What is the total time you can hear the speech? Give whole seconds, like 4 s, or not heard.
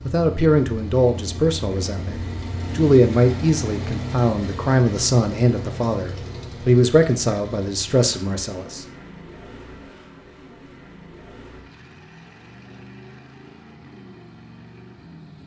9 s.